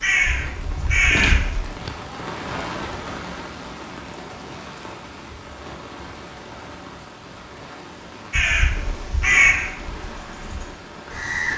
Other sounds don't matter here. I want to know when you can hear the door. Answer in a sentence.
The door can be heard from 1.1 to 1.9 s.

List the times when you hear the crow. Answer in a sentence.
You can hear the crow from 0.0 to 1.6 s and from 8.3 to 11.5 s.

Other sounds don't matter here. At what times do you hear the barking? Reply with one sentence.
The barking can't be heard in this clip.